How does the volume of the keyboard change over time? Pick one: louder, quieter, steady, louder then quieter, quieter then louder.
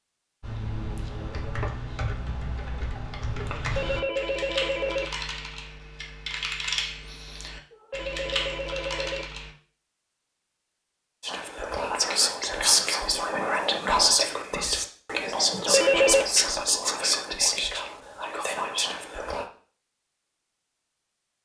steady.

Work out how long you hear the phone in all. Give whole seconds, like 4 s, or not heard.
4 s.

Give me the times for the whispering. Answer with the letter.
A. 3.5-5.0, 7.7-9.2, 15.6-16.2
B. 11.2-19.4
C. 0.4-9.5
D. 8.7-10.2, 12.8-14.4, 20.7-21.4
B.